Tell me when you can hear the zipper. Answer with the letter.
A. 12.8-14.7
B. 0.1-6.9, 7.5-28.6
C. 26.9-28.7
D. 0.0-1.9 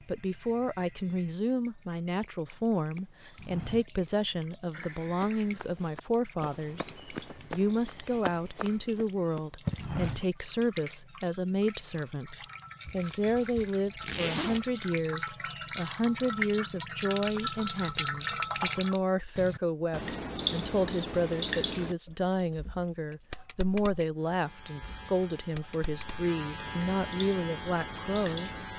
A.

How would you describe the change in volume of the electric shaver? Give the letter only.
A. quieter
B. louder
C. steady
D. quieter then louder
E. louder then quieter
B.